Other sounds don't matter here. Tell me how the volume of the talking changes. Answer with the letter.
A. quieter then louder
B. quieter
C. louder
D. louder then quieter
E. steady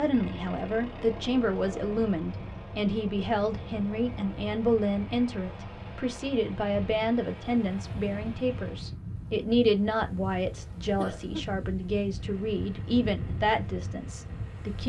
E.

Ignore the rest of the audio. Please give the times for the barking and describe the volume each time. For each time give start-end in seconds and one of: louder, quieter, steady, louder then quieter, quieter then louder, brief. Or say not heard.
not heard.